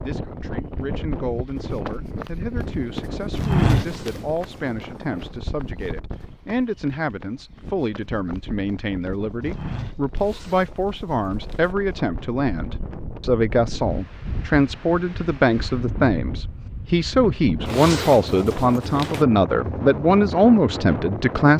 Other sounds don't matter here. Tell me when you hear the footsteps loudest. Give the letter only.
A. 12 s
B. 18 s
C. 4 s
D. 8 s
C.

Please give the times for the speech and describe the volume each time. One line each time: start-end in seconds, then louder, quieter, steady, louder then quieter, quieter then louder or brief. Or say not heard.
0.0-21.5 louder.